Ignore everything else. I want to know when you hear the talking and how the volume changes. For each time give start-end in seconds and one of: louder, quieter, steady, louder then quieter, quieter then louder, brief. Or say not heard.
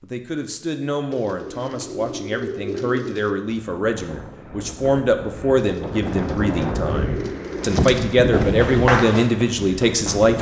0.0-10.3 louder.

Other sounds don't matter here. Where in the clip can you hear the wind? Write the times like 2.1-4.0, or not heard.
3.5-10.3.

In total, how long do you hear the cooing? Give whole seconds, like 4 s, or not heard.
5 s.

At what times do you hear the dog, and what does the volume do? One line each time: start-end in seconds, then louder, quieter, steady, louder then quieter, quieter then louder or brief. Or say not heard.
not heard.